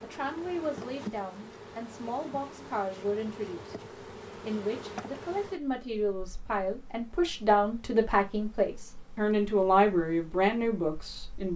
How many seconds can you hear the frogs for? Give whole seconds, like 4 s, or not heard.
not heard.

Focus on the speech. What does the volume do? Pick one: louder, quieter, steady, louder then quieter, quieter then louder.
louder.